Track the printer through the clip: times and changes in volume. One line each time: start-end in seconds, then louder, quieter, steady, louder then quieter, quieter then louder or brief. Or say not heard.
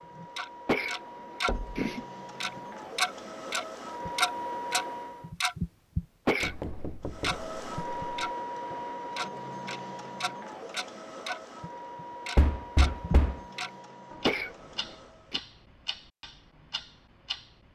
0.0-5.3 louder
7.0-15.4 quieter.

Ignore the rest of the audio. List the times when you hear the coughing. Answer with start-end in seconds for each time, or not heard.
0.7-2.0, 6.2-6.8, 14.2-15.4.